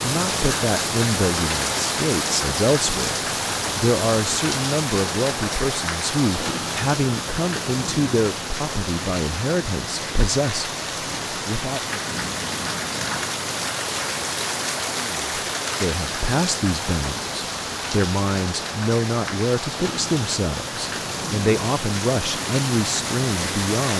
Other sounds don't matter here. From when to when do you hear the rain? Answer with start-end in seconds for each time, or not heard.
0.0-23.9.